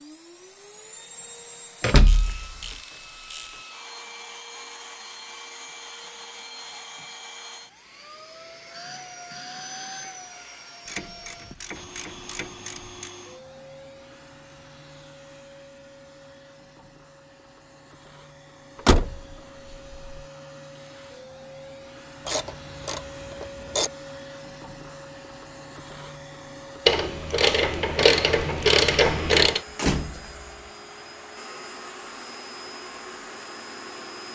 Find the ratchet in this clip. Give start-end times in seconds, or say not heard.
2.0-3.6, 10.8-13.2, 22.2-23.9, 26.9-29.6.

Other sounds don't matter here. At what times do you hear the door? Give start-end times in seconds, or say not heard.
1.8-2.8, 18.9-20.2, 29.8-30.4.